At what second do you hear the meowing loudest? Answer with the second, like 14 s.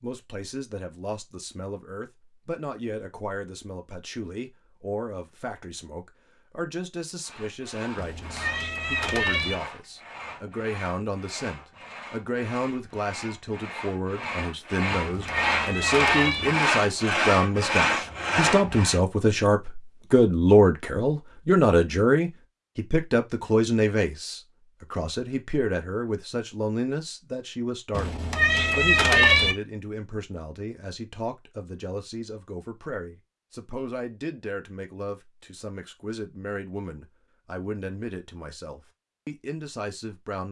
29 s.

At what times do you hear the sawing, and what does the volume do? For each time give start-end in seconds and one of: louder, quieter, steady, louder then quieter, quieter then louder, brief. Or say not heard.
7.2-19.0 louder.